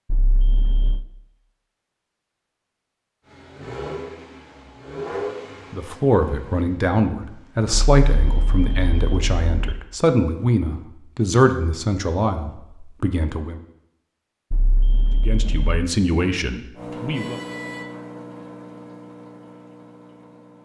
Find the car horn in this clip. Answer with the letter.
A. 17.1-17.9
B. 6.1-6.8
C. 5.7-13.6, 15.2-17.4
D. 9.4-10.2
A.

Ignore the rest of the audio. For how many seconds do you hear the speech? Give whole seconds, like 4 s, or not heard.
10 s.